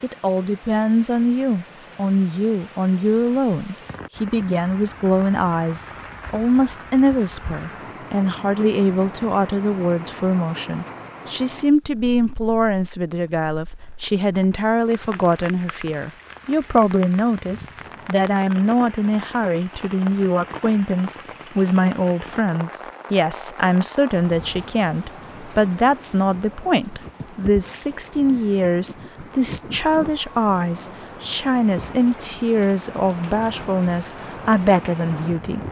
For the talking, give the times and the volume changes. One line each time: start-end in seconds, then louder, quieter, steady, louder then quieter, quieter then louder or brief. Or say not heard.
0.0-35.6 steady.